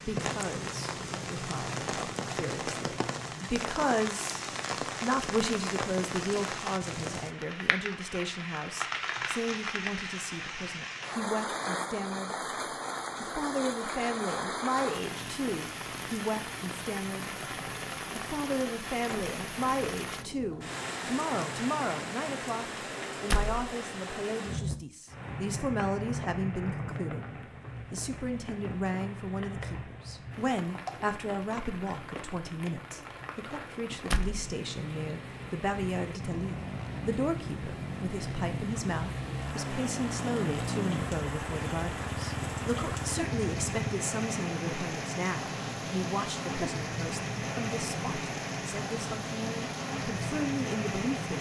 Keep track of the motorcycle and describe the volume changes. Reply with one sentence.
The volume of the motorcycle goes up.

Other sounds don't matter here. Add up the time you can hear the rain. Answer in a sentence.
The rain can be heard for 51 seconds in total.